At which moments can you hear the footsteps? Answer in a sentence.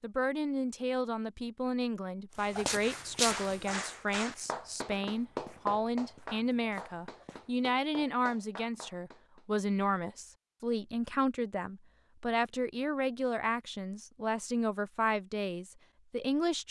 The footsteps can be heard from 2.5 to 7.7 s.